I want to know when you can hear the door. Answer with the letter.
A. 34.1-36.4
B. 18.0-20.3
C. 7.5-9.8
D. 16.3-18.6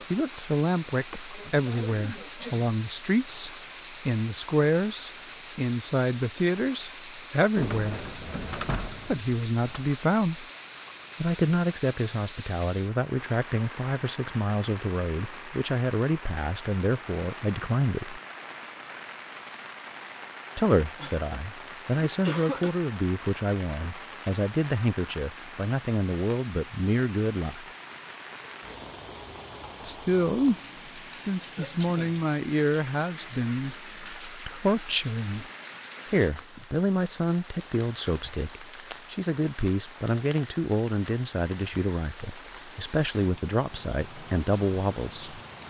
C.